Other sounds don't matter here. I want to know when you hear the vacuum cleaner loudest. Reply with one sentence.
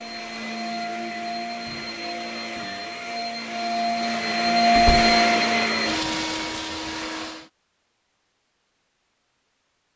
The volume of the vacuum cleaner peaks at 5 seconds.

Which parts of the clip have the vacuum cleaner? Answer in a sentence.
You can hear the vacuum cleaner from 0.0 to 7.5 s.